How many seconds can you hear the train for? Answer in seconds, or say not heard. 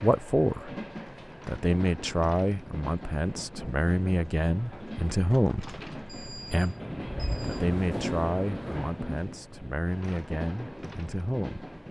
12 s.